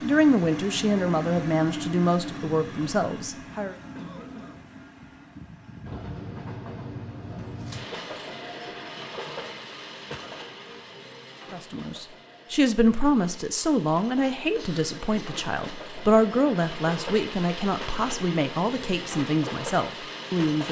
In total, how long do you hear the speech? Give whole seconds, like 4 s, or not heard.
13 s.